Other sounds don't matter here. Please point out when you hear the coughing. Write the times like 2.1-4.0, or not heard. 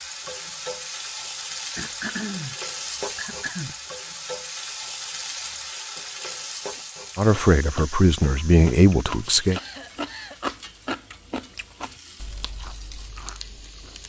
1.8-3.8, 9.5-10.4.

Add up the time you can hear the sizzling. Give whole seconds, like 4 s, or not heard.
14 s.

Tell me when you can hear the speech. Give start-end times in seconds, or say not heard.
7.2-9.6.